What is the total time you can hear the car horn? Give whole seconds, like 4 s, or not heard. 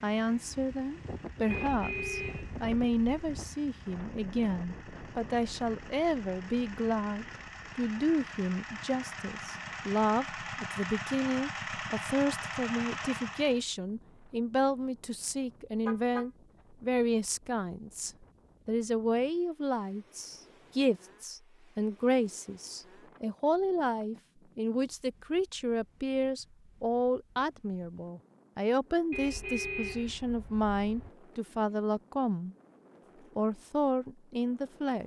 4 s.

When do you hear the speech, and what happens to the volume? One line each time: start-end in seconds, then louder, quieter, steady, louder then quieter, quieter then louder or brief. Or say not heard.
0.0-32.5 steady
33.4-35.0 brief.